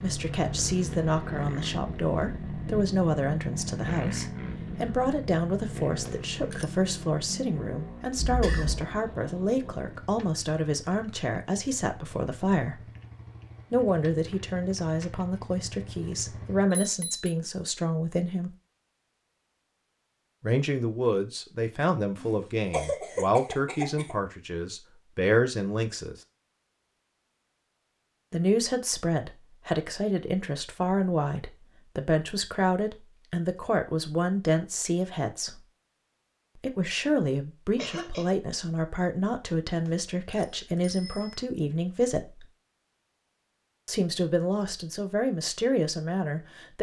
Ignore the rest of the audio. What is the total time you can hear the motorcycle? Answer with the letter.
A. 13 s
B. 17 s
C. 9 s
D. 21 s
B.